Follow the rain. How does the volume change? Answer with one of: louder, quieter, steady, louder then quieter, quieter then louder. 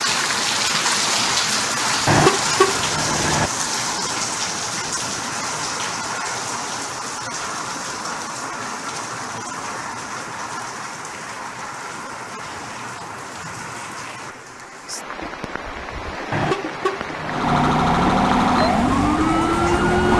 quieter.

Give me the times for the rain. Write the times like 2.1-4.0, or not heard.
0.0-20.0.